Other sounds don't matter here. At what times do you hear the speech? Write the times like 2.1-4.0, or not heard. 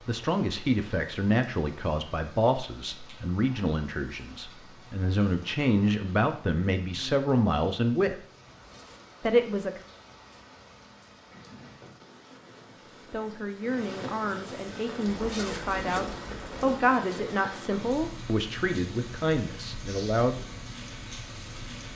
0.1-8.2, 9.2-9.8, 12.7-20.4.